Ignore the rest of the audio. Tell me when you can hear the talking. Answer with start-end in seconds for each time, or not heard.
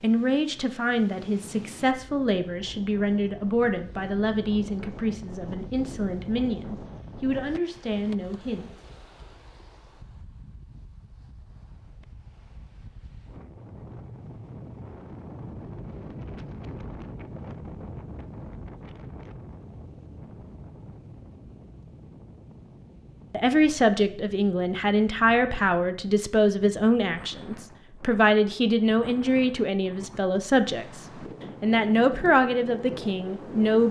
0.0-8.7, 23.3-33.8.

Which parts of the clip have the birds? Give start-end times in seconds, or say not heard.
not heard.